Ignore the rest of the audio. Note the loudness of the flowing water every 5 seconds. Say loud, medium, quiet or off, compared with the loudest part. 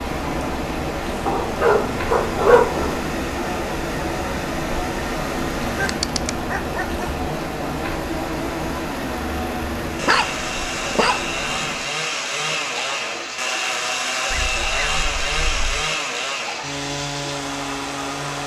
loud, loud, medium, medium.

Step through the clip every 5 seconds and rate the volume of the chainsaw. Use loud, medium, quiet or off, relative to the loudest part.
medium, medium, loud, loud.